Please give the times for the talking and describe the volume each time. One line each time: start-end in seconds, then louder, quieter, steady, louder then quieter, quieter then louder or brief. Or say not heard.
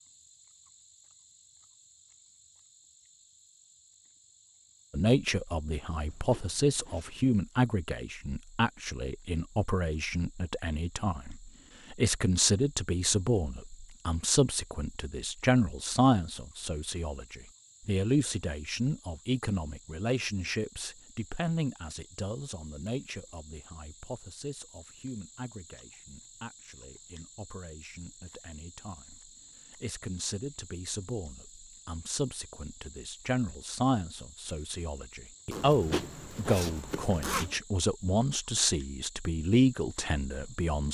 4.9-40.8 quieter then louder.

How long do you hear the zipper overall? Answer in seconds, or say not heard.
3 s.